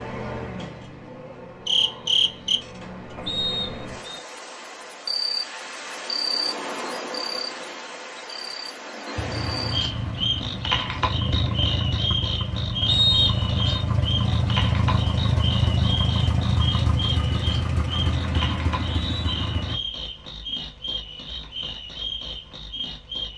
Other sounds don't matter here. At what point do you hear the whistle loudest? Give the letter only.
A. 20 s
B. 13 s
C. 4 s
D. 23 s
B.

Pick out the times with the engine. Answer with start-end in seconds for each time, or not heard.
9.2-19.8.